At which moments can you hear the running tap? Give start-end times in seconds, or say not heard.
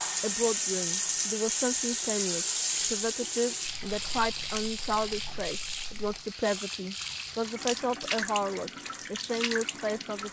0.0-10.2.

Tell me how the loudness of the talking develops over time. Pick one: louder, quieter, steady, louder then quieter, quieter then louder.
steady.